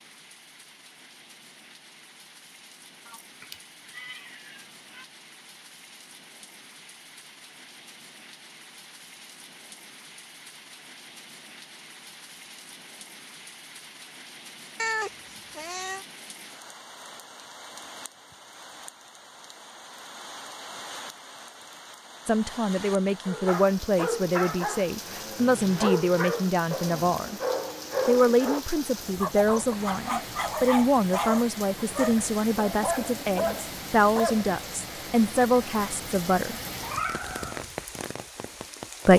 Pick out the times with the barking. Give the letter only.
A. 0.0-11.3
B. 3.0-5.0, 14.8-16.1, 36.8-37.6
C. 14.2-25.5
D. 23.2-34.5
D.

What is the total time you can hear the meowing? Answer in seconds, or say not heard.
4 s.